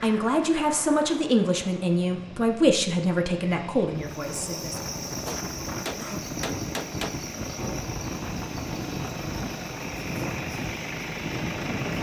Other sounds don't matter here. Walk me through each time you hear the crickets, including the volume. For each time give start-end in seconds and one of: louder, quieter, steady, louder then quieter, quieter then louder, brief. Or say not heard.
4.0-11.9 quieter.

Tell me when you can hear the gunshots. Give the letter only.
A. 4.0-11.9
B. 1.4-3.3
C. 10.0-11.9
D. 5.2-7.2
D.